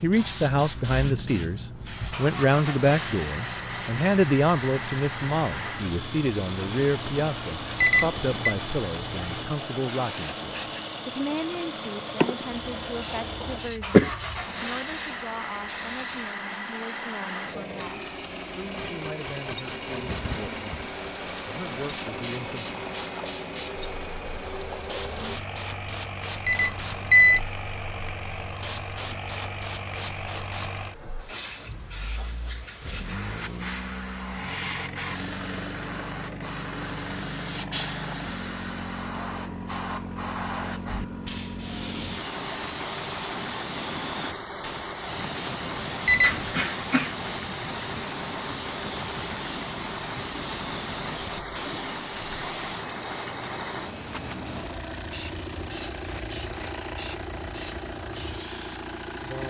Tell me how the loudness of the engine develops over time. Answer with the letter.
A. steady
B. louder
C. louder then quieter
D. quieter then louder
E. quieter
A.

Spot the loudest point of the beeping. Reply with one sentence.
The loudest moment of the beeping is at 27 seconds.